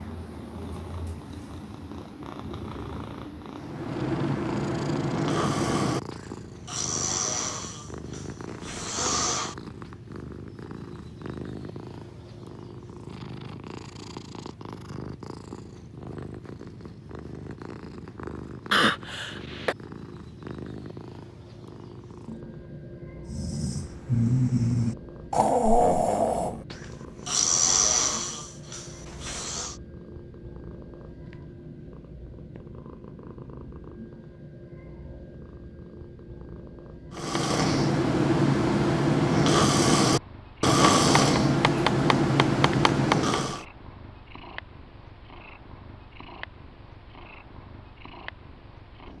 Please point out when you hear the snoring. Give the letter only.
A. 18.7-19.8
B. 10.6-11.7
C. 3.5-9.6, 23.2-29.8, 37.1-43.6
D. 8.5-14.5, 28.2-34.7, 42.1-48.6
C.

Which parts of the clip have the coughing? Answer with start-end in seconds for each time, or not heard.
18.7-19.8.